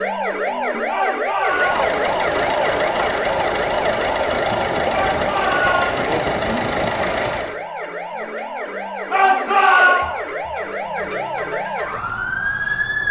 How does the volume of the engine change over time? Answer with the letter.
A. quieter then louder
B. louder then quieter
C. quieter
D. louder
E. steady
E.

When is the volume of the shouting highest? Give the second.
10 s.